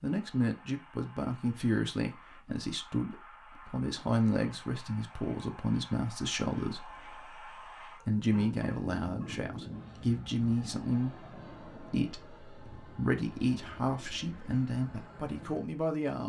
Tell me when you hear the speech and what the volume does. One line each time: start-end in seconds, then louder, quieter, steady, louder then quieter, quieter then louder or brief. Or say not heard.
0.0-16.2 steady.